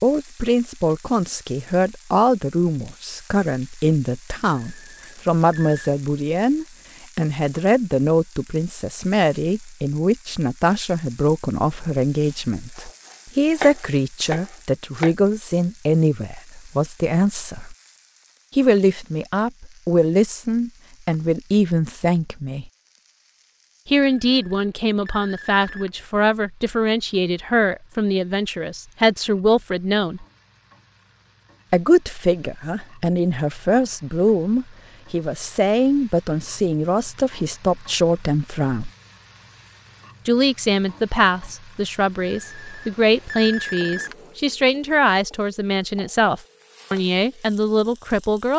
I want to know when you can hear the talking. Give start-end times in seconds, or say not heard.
0.0-17.8, 18.6-22.7, 23.9-30.2, 31.7-38.9, 40.2-48.5.